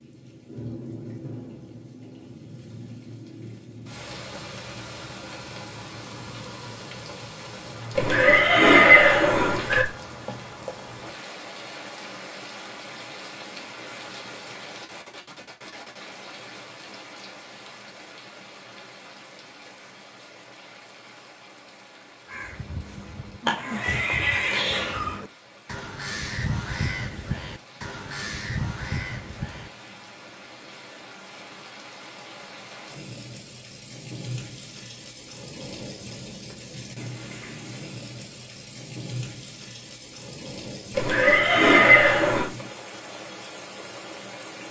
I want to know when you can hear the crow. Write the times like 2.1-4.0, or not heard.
22.2-29.7.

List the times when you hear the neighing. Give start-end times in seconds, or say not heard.
8.0-9.8, 23.4-25.1, 40.9-42.5.